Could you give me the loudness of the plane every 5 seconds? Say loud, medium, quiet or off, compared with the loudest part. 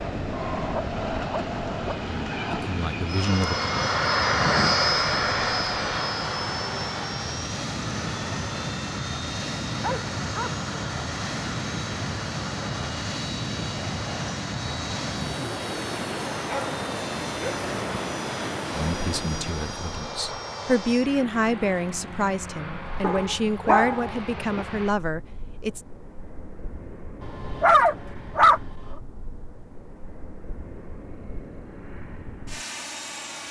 loud, loud, medium, medium, medium, quiet, quiet.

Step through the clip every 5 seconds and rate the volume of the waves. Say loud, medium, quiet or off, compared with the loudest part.
loud, loud, loud, loud, off, off, off.